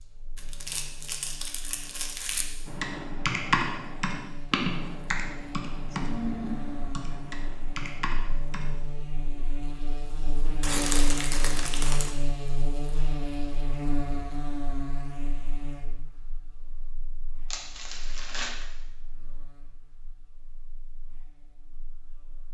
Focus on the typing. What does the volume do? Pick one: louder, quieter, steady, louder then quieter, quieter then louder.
quieter.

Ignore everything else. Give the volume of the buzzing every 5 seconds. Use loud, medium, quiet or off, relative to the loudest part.
quiet, medium, loud, quiet, quiet.